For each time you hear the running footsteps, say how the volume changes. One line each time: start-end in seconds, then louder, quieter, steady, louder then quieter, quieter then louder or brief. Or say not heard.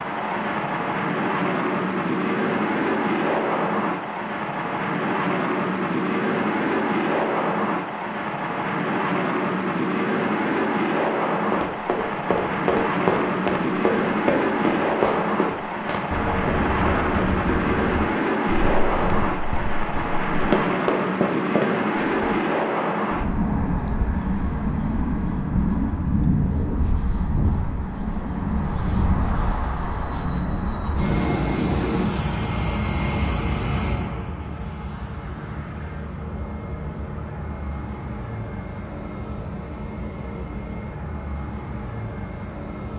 11.5-22.4 quieter then louder.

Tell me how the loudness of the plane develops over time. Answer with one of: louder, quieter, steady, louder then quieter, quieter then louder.
quieter.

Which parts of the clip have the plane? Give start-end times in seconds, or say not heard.
0.0-42.9.